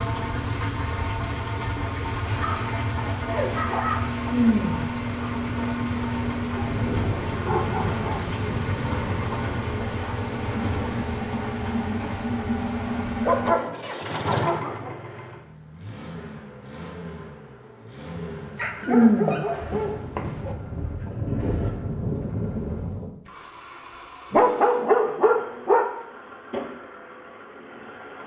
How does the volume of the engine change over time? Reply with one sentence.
The loudness of the engine goes down.